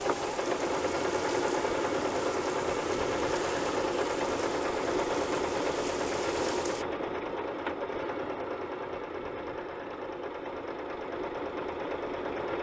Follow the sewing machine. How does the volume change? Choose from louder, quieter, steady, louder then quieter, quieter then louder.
quieter.